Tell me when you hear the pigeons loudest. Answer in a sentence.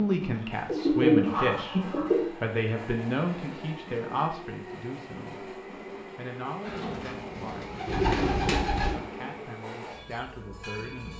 The loudest moment of the pigeons is at 1 second.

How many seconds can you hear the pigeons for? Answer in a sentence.
The pigeons can be heard for 4 seconds in total.